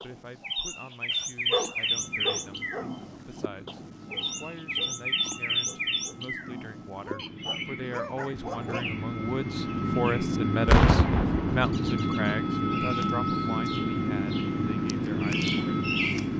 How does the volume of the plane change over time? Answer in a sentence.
The volume of the plane goes up.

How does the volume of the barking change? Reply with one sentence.
The loudness of the barking goes down, then up.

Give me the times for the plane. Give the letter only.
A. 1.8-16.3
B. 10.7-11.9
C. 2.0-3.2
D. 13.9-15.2
A.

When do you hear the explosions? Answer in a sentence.
The explosions can be heard from 10.7 to 11.9 s.